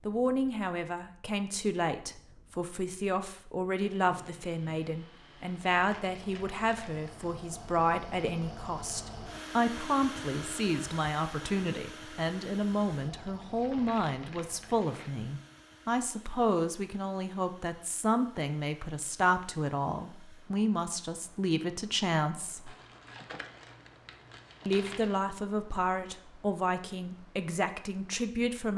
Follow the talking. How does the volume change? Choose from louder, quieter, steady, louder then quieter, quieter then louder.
steady.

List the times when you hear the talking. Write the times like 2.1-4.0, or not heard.
0.1-22.8, 24.6-28.7.